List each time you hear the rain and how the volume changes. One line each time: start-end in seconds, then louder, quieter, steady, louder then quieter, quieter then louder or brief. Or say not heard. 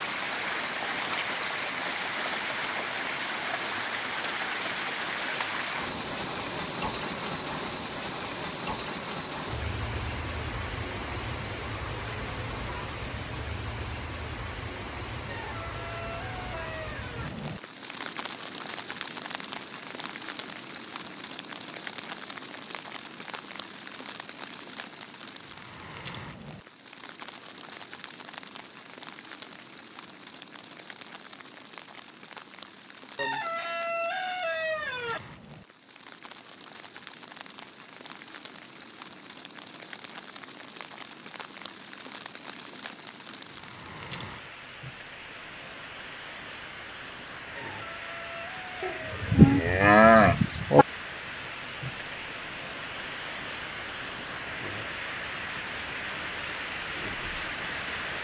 0.0-58.1 quieter then louder.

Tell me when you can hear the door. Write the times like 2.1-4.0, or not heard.
not heard.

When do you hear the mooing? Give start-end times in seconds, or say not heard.
48.8-50.9.